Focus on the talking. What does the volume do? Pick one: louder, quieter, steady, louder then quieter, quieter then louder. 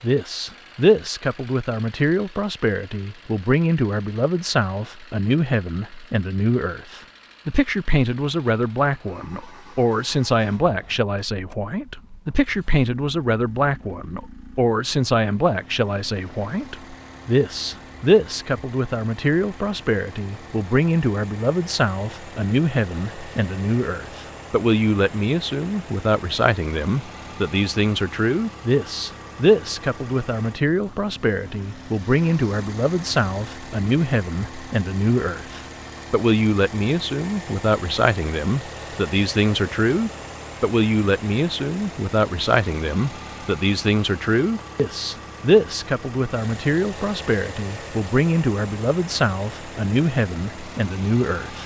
steady.